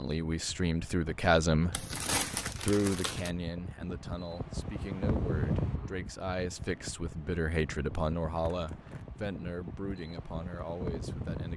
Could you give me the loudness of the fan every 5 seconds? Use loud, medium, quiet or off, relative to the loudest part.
medium, loud, loud.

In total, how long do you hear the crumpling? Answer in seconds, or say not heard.
2 s.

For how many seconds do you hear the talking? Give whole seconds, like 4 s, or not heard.
11 s.